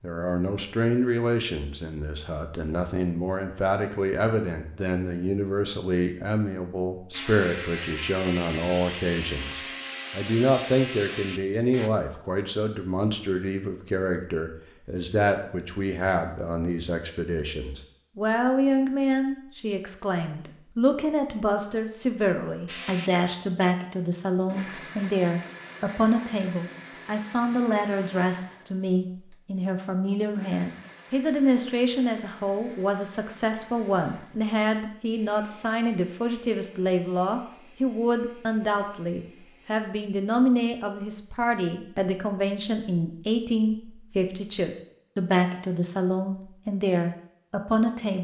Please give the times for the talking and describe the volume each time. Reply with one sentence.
The talking can be heard from 0.0 to 48.1 s, at a steady volume.